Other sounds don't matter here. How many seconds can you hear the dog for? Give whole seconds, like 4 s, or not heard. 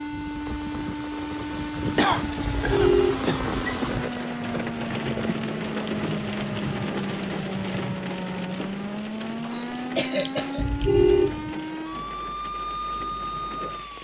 not heard.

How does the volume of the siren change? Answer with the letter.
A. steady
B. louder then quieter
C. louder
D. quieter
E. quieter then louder
A.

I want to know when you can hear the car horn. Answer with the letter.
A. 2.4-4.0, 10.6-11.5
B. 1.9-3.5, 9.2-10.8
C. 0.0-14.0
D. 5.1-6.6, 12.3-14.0
A.